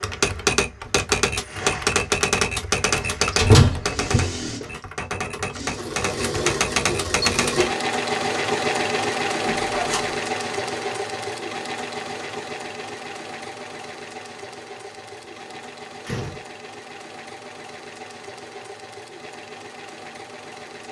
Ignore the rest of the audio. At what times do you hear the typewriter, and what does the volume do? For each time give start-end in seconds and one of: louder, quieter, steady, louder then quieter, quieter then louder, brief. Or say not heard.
0.0-7.8 quieter then louder.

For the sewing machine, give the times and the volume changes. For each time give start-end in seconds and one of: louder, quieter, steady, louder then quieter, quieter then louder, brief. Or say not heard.
0.0-20.8 louder then quieter.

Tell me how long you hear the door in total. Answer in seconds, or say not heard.
3 s.